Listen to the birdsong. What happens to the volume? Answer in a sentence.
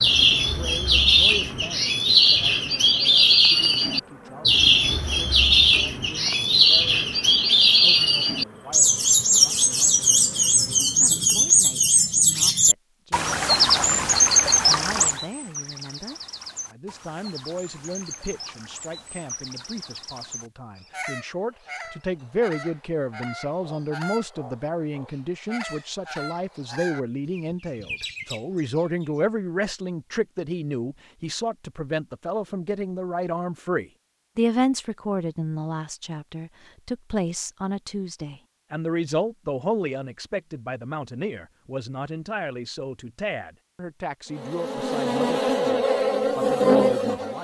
The volume of the birdsong goes down.